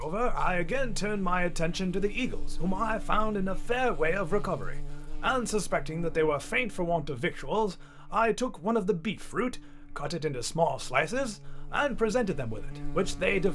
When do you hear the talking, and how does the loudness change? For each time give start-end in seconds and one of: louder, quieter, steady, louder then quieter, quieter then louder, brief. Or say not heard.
0.0-13.5 steady.